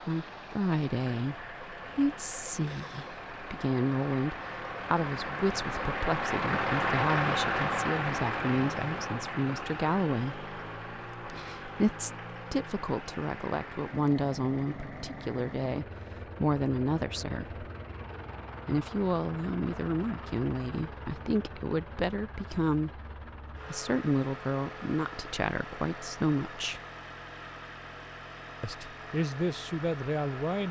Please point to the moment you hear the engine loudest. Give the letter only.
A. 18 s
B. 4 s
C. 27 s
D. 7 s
D.